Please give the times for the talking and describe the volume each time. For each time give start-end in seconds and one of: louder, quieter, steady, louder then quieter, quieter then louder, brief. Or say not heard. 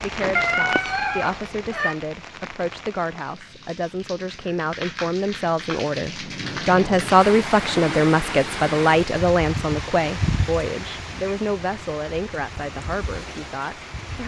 0.0-14.2 louder then quieter.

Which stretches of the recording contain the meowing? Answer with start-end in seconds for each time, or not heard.
0.2-1.9.